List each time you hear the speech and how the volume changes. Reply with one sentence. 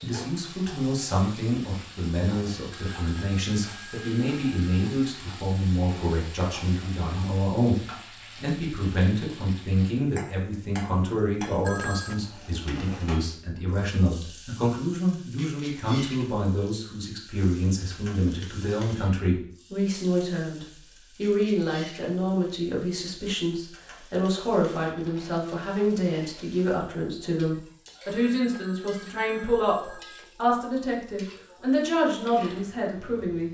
The speech can be heard from 0.0 to 33.4 s, at a steady volume.